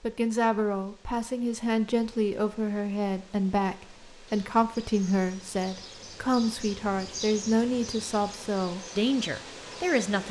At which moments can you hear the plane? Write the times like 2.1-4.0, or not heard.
not heard.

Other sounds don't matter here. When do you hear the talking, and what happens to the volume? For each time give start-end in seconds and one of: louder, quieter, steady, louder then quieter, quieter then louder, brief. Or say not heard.
0.0-10.2 steady.